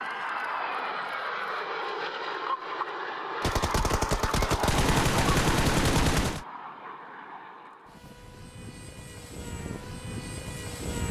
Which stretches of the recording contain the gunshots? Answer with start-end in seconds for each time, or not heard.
3.4-6.5.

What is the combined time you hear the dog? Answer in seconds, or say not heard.
not heard.